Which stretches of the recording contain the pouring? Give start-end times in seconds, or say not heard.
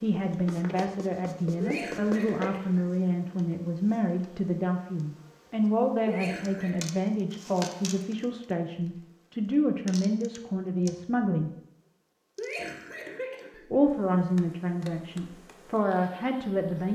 not heard.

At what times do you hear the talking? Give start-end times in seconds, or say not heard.
0.0-11.5, 13.7-16.9.